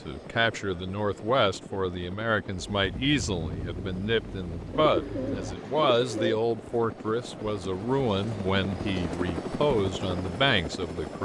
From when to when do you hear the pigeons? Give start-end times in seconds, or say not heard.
4.8-6.3.